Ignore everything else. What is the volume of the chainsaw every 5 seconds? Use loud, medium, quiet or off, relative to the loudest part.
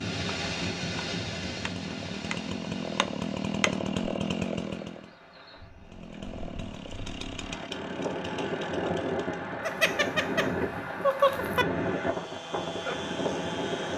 loud, medium, medium.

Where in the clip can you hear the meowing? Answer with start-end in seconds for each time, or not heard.
9.6-11.7.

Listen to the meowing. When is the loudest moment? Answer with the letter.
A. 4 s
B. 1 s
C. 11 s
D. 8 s
C.